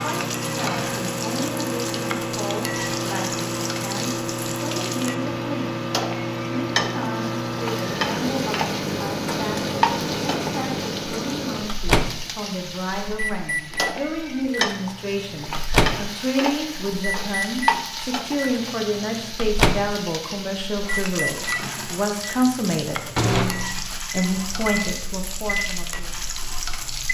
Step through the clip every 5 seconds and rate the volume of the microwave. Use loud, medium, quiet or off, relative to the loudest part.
loud, loud, loud, loud, loud, medium.